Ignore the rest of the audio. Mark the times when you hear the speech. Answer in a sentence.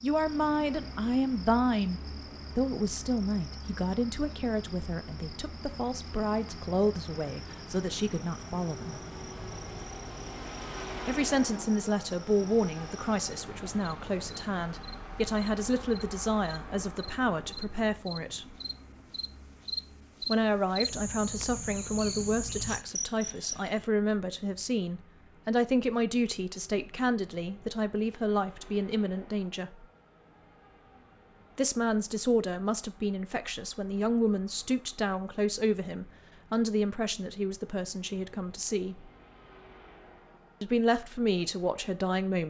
The speech can be heard from 0.0 to 9.0 s, from 11.1 to 18.4 s, from 20.2 to 29.9 s, from 31.6 to 39.1 s and from 40.6 to 42.4 s.